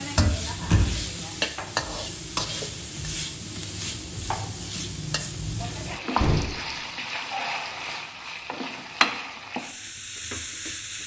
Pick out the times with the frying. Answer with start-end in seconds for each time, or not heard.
0.0-11.0.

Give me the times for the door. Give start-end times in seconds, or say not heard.
0.1-0.9, 5.6-6.5.